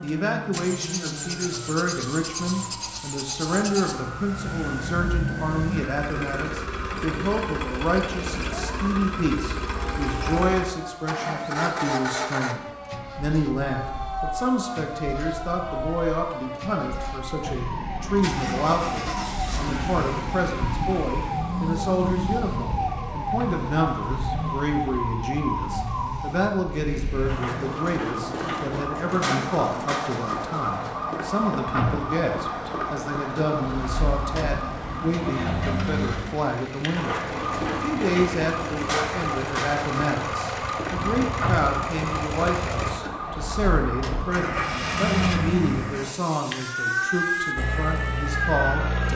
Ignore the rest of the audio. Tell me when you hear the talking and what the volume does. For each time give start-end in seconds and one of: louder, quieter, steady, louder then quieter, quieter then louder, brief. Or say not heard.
0.0-49.0 steady.